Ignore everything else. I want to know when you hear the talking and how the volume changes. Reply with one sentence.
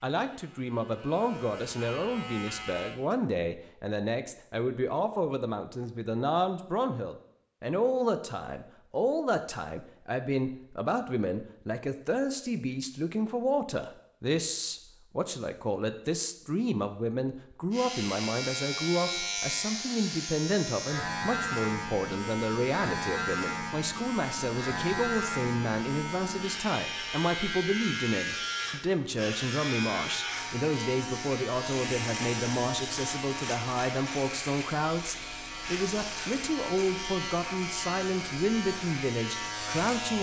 The talking can be heard from 0.0 to 40.1 s, at a steady volume.